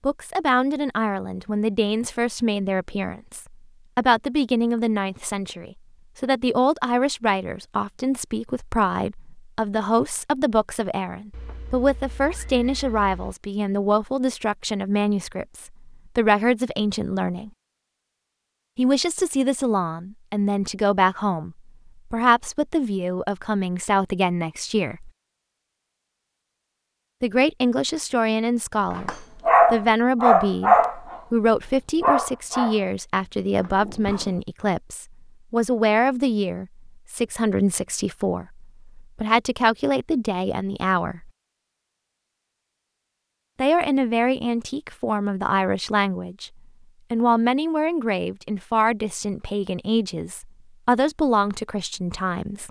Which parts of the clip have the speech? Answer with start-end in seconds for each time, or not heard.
0.0-17.5, 18.8-25.1, 27.2-29.1, 29.7-41.3, 43.5-46.5, 47.1-52.6.